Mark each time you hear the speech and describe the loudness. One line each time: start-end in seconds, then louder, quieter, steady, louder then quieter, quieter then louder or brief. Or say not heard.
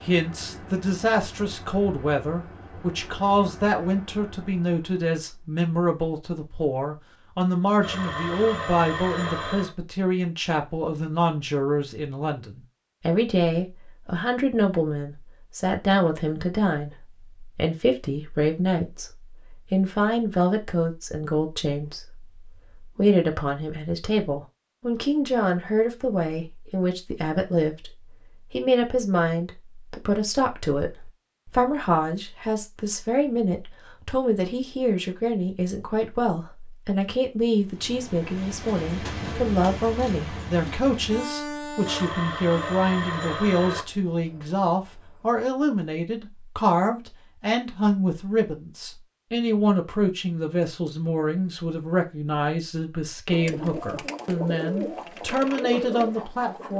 0.1-27.9 steady
28.5-56.7 steady.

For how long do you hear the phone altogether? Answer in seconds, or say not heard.
4 s.